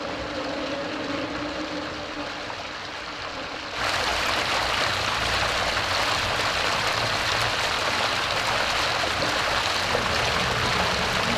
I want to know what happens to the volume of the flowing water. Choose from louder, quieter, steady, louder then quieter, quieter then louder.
louder.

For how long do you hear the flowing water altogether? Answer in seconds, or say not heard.
11 s.